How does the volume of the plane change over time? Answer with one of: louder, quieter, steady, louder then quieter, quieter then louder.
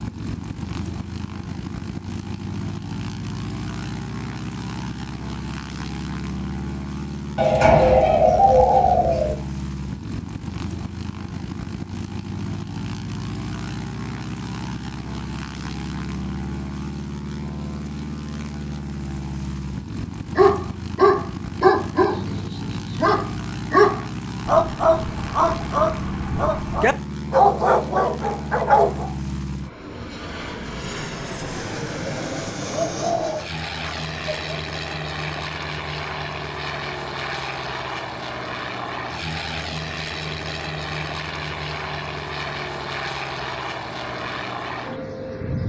steady.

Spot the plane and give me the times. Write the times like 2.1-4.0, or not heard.
0.0-45.6.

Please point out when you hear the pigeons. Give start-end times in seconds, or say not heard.
7.3-9.3, 32.9-34.5.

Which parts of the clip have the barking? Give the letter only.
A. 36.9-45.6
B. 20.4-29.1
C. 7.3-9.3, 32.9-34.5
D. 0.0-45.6
B.